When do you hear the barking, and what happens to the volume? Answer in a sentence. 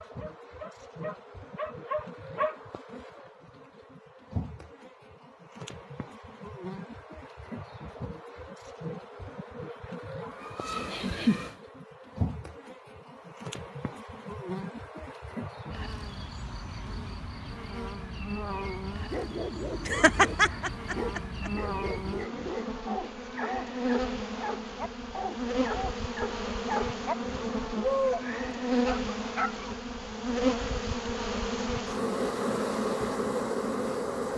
You can hear the barking briefly from 0.0 to 2.6 s; and from 18.9 to 29.7 s, getting louder.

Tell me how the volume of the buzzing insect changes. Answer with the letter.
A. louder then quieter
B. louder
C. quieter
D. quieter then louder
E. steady
B.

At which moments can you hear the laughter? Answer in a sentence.
You can hear the laughter from 10.3 to 11.6 s and from 19.9 to 21.5 s.